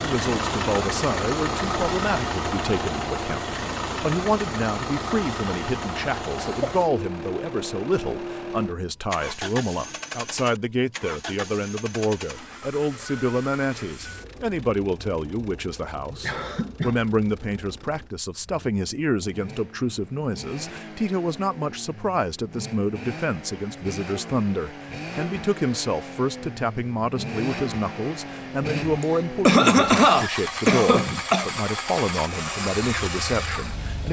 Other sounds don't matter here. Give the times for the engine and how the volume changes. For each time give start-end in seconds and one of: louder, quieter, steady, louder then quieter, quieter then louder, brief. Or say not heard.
0.0-34.0 quieter then louder.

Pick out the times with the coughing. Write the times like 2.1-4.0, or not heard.
6.3-6.8, 16.2-17.0, 29.0-31.5.